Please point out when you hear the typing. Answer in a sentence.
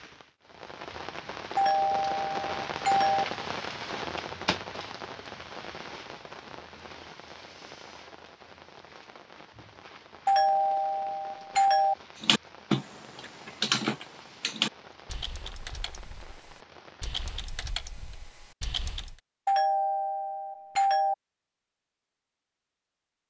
You can hear the typing from 12.2 to 19.2 s.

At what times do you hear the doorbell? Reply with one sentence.
The doorbell can be heard from 1.6 to 3.2 s, from 10.2 to 11.9 s and from 19.4 to 21.1 s.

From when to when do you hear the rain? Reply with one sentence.
The rain can be heard from 0.0 to 17.4 s.